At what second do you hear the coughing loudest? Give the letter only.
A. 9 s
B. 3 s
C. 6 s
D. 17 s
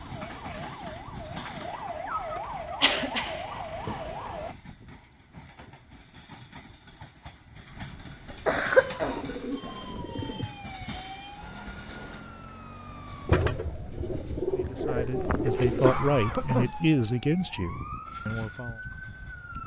A.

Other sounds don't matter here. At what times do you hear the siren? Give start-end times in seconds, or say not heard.
0.0-4.5, 8.8-19.6.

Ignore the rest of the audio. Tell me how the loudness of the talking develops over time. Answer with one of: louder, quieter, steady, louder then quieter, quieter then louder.
louder then quieter.